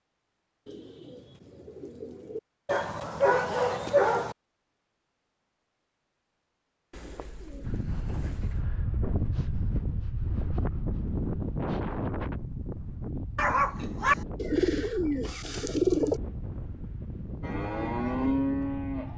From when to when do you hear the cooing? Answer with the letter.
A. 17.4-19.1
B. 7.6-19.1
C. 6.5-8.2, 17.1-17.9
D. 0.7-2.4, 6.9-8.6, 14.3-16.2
D.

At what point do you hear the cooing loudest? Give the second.
16 s.